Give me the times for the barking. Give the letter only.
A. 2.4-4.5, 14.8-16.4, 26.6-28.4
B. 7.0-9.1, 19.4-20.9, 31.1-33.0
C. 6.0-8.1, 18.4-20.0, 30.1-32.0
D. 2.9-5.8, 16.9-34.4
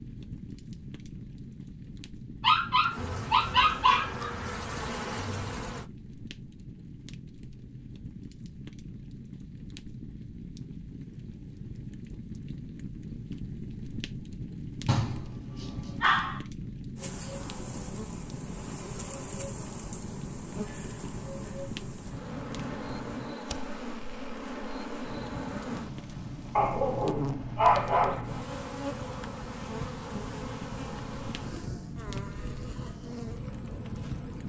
A.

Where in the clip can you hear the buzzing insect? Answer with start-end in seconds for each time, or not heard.
2.9-5.8, 16.9-34.4.